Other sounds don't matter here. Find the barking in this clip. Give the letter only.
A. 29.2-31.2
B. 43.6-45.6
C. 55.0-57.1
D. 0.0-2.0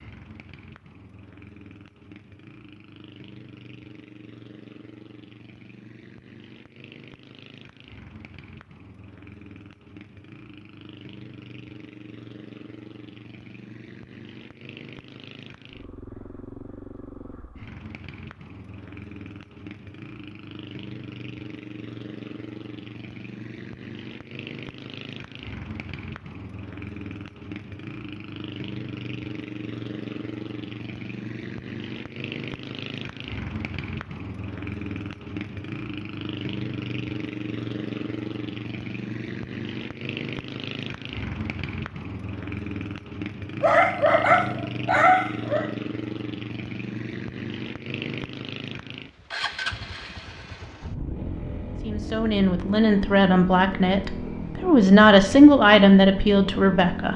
B.